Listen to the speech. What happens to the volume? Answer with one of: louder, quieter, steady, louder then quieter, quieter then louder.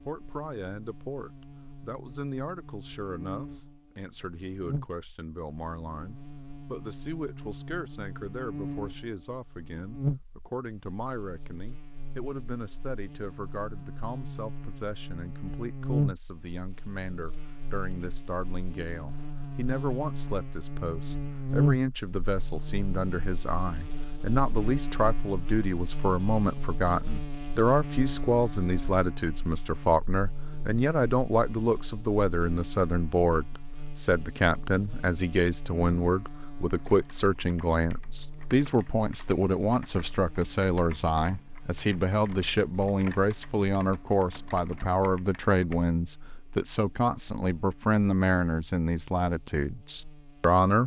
louder.